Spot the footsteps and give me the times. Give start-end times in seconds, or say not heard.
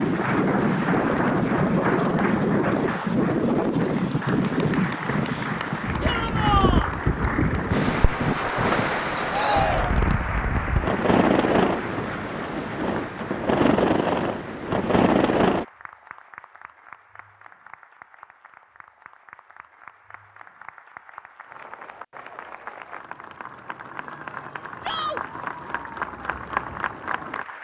not heard.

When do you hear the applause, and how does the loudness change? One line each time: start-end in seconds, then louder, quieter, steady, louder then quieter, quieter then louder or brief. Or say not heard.
0.0-27.5 quieter then louder.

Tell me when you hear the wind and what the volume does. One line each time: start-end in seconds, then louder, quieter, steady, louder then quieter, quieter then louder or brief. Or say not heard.
0.0-15.7 steady.